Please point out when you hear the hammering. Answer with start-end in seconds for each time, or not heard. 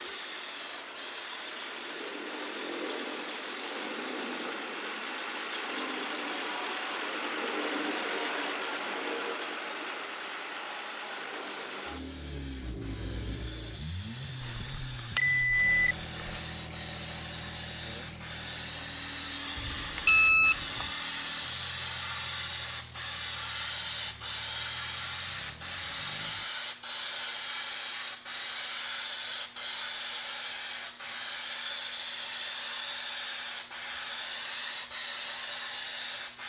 not heard.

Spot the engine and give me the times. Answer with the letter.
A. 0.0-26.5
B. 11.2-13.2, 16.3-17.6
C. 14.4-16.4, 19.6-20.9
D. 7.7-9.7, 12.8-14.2
A.